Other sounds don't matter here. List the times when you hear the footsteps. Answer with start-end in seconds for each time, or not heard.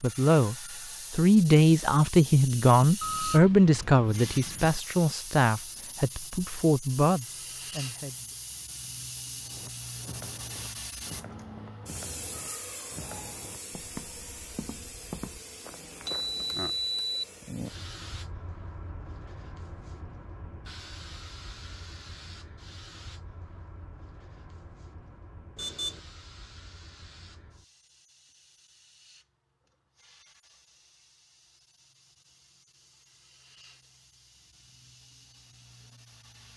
9.4-16.7.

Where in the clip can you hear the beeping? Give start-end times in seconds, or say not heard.
3.0-4.8, 16.1-17.2, 25.6-26.0.